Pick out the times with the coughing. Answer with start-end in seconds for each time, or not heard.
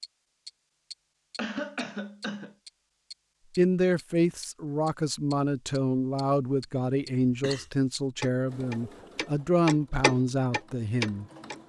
1.4-2.5, 7.2-7.7.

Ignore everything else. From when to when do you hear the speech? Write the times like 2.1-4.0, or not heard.
3.5-11.2.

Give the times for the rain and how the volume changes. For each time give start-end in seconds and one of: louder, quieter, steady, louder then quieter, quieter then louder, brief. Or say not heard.
not heard.